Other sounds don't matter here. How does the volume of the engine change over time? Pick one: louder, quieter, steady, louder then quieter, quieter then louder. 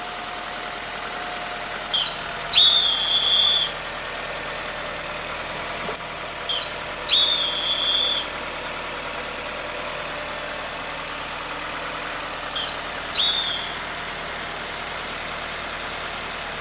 steady.